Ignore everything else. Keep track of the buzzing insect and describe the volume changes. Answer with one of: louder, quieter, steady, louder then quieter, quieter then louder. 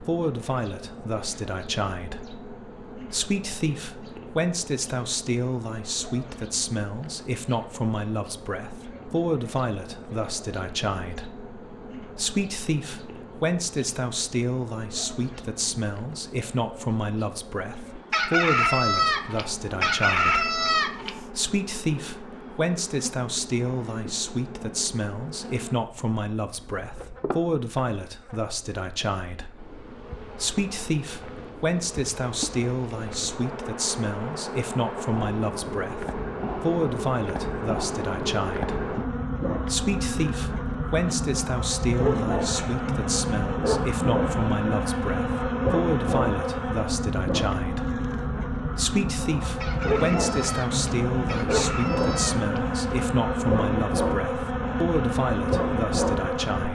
louder.